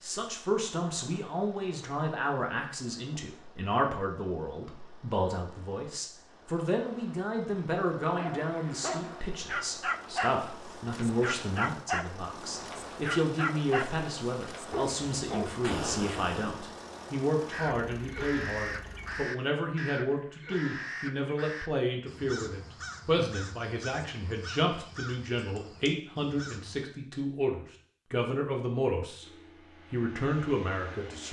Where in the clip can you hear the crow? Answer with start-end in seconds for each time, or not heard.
17.5-26.9.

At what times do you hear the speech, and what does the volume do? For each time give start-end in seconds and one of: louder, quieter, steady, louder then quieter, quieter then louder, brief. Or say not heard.
0.0-29.2 steady
29.9-31.2 brief.